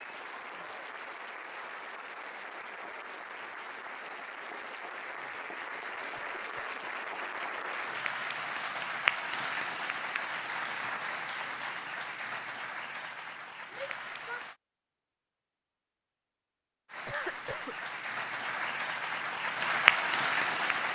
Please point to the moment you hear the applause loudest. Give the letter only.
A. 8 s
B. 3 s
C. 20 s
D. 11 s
C.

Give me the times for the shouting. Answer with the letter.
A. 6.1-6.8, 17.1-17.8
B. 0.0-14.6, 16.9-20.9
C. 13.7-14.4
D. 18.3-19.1
C.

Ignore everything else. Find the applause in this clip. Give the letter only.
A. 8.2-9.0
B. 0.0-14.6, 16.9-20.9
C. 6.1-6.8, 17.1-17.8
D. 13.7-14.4
B.